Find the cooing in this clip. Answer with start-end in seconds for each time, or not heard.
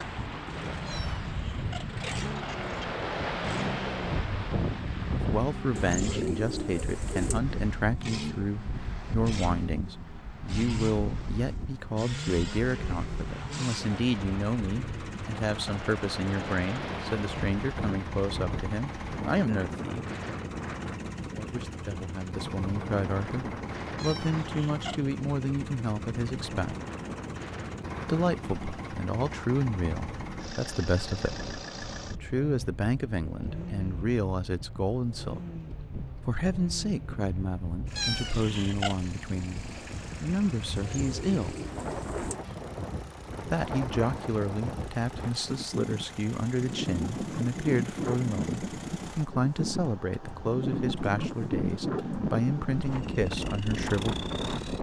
5.8-7.4, 40.8-42.4.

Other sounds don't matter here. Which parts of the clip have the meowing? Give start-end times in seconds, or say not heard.
0.8-2.9, 23.9-25.1, 38.0-39.0.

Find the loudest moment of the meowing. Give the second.
38 s.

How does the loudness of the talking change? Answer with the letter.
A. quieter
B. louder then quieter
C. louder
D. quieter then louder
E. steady
E.